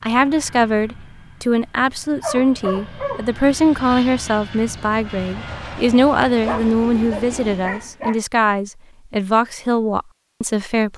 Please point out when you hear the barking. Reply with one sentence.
You can hear the barking from 1.8 to 3.2 s and from 6.5 to 8.2 s.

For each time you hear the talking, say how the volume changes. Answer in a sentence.
You can hear the talking from 0.0 to 10.9 s, at a steady volume.